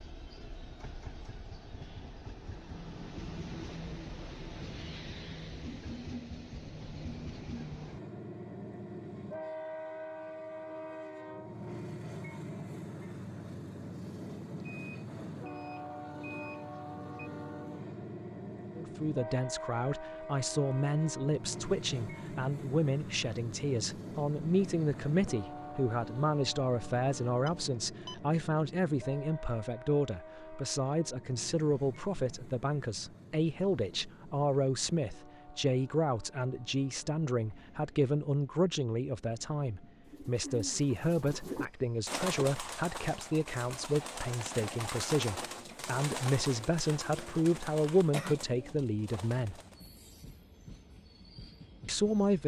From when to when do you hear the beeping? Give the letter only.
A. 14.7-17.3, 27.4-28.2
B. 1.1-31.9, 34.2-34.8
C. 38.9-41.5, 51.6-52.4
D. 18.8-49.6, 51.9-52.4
A.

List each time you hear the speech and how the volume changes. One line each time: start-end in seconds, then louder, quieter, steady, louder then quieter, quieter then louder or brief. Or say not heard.
18.8-49.6 steady
51.9-52.4 brief.